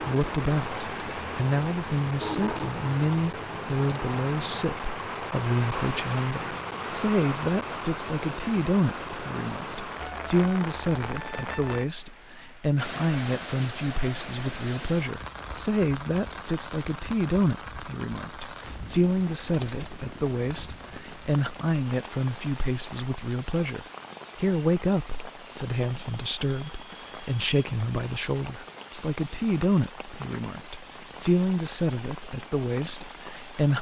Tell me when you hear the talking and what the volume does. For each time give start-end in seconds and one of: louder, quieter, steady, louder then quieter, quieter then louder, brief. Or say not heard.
0.0-33.7 steady.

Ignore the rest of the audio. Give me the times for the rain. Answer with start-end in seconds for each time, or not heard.
0.0-33.7.